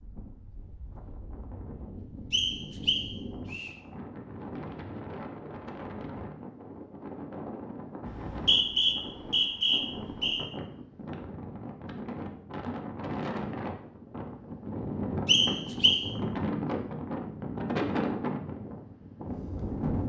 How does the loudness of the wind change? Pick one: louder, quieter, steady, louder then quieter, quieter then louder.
louder.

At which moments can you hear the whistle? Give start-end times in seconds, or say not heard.
2.3-3.7, 8.1-10.4, 15.2-16.1.